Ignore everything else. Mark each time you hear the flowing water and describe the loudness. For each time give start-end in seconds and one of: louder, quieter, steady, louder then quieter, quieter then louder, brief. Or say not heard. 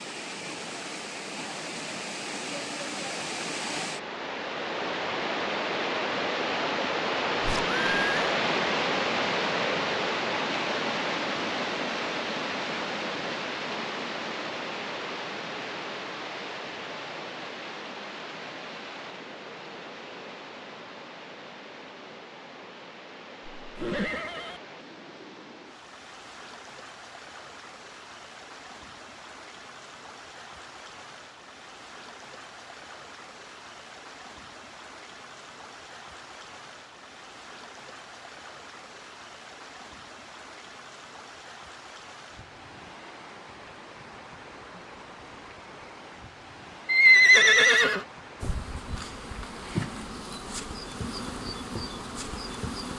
0.0-52.9 quieter.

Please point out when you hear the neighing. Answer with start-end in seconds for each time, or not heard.
7.4-8.2, 23.6-24.6, 46.9-48.0.